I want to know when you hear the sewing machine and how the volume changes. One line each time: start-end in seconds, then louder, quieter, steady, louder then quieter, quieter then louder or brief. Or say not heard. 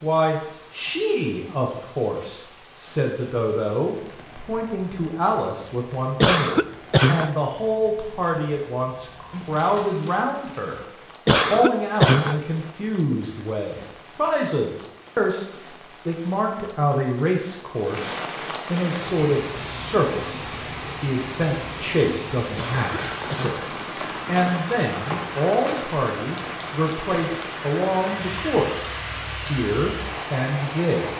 not heard.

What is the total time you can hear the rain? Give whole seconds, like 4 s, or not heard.
31 s.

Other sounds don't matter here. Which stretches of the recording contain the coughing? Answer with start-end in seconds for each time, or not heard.
6.2-7.3, 11.2-12.4, 22.6-23.6.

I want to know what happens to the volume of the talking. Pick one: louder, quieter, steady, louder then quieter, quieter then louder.
steady.